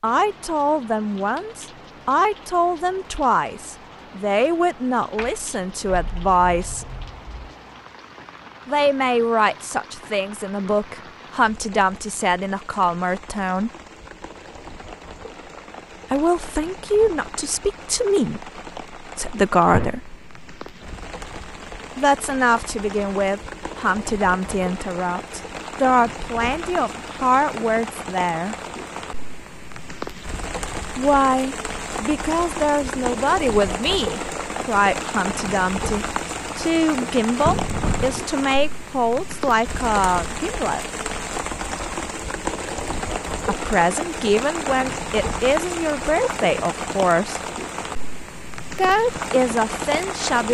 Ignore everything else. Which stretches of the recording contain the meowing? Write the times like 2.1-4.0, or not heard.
not heard.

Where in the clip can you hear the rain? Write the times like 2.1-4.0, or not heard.
0.0-50.4.